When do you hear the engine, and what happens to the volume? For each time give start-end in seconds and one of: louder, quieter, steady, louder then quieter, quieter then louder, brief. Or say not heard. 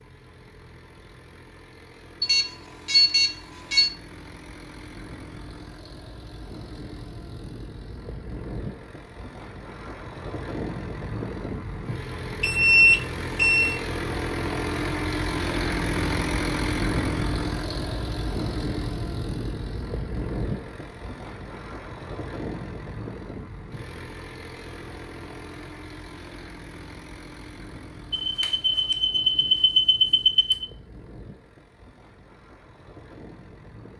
0.0-33.9 louder then quieter.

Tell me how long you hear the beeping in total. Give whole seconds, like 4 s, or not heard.
6 s.